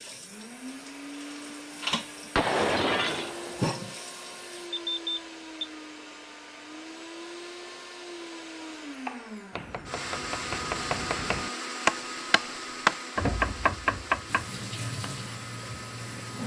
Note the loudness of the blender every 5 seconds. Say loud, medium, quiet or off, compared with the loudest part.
medium, medium, loud, medium.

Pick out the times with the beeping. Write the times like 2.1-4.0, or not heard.
4.7-5.7.